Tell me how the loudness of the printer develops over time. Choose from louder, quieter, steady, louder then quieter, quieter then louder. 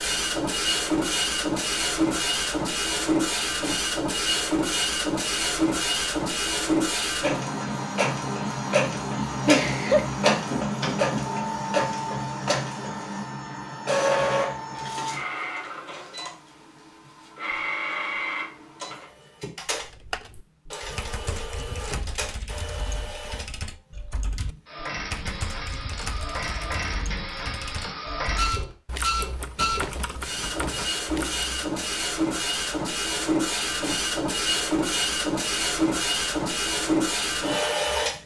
quieter then louder.